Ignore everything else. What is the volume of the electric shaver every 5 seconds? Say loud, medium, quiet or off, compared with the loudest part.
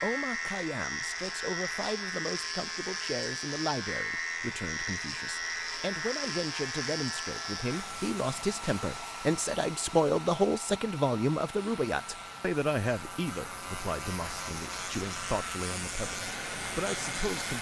loud, loud, medium, loud.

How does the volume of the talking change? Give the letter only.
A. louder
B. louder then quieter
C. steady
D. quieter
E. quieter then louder
B.